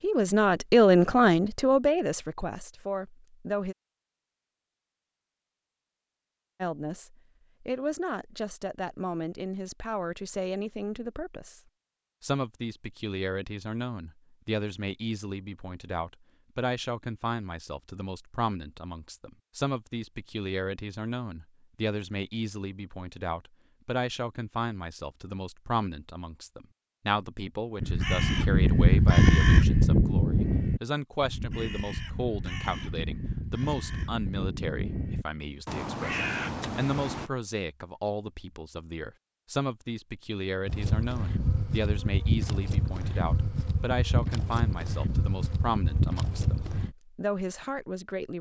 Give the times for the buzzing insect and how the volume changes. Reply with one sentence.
The buzzing insect can be heard from 40.6 to 47.0 s, at a steady volume.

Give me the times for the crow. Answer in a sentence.
You can hear the crow from 27.8 to 37.3 s.